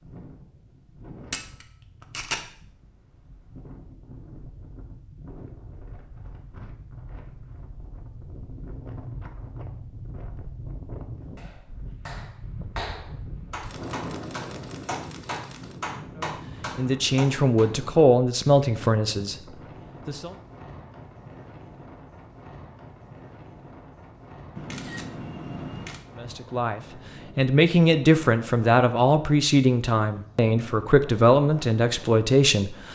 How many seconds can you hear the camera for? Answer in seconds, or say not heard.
5 s.